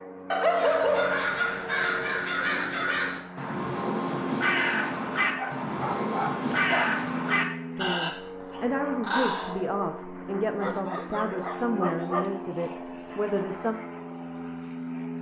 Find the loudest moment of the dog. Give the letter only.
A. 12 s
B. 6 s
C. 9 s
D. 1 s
D.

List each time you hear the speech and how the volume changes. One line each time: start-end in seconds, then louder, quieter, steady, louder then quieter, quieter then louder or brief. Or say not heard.
7.8-13.8 steady.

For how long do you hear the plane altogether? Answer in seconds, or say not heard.
15 s.